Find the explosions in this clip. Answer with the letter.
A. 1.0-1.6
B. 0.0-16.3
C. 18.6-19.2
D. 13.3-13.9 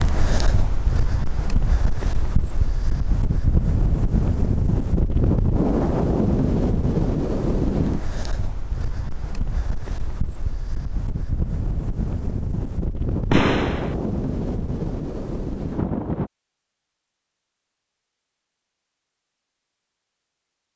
D.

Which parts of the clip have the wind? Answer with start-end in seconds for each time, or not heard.
0.0-16.3.